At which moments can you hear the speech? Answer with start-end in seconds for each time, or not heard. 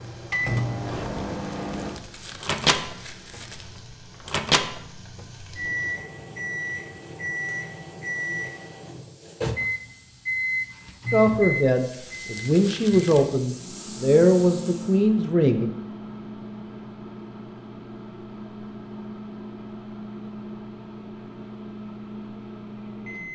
11.1-15.7.